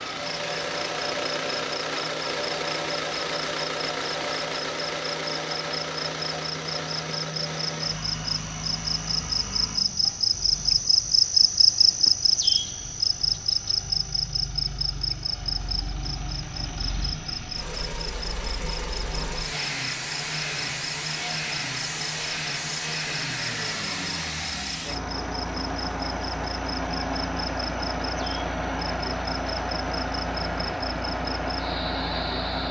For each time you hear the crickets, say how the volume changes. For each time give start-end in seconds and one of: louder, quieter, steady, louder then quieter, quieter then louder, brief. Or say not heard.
0.1-32.6 louder then quieter.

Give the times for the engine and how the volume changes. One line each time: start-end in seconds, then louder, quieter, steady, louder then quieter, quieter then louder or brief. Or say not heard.
0.0-32.6 quieter then louder.